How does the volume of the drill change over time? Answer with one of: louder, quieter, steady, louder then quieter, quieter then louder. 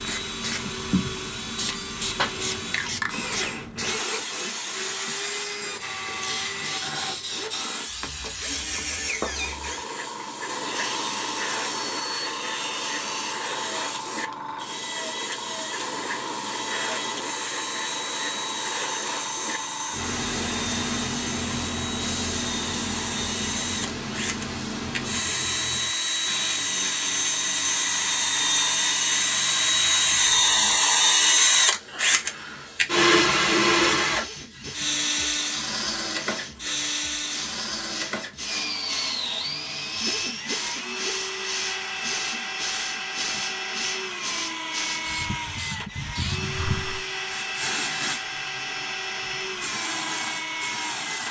louder then quieter.